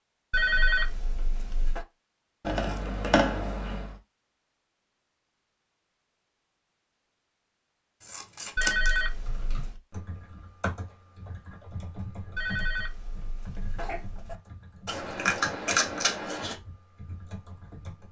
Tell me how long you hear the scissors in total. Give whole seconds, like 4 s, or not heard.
4 s.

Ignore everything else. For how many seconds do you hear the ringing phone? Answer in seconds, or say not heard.
5 s.